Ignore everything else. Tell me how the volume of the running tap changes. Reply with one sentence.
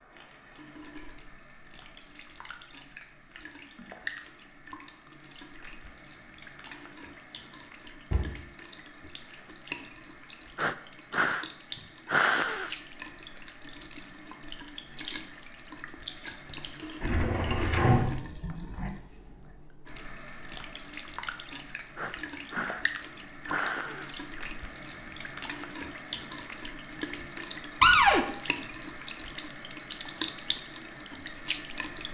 The loudness of the running tap goes up.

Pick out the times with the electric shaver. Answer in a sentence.
You can't hear the electric shaver here.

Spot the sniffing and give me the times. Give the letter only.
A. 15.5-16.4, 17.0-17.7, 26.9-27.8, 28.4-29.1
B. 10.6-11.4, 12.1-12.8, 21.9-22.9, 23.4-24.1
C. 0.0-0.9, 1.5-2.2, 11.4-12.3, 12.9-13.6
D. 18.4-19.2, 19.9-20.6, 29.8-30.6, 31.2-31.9
B.